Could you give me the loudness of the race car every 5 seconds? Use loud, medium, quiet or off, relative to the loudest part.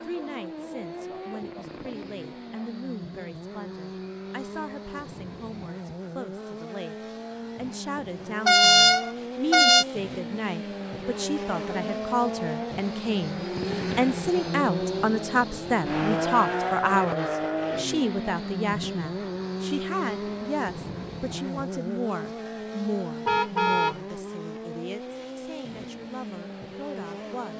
medium, medium, loud, loud, medium, medium.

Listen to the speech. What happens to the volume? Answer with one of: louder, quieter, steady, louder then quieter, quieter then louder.
louder then quieter.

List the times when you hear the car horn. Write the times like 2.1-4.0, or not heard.
8.4-9.8, 23.2-24.0.